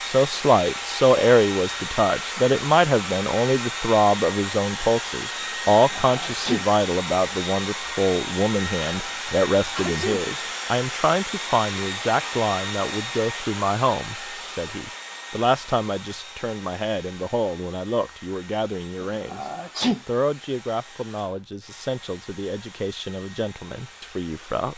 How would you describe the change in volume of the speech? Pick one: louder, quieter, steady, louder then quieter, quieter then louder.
quieter.